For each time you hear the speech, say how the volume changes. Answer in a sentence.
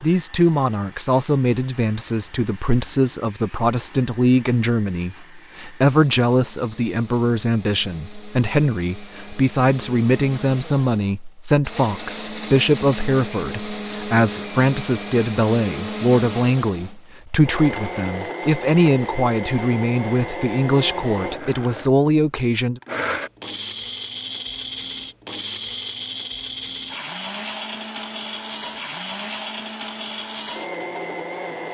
The speech can be heard from 0.0 to 22.8 s, at a steady volume.